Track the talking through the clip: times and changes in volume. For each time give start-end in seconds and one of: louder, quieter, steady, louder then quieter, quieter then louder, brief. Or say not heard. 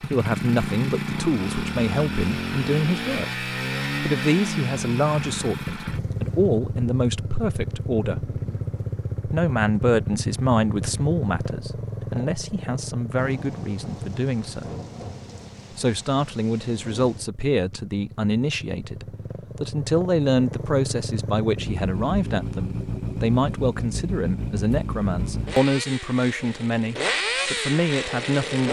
0.0-8.2 steady
9.2-14.7 quieter
15.8-28.6 steady.